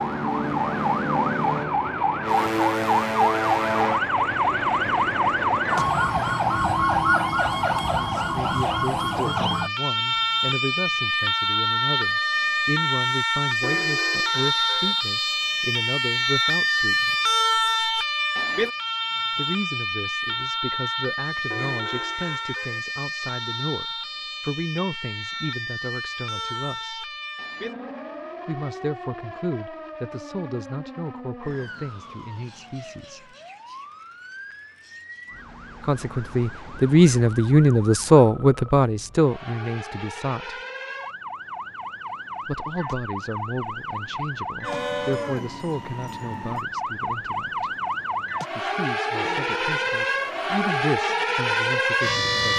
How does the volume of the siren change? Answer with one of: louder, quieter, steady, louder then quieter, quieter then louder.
quieter then louder.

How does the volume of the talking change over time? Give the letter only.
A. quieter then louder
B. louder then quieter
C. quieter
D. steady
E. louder
B.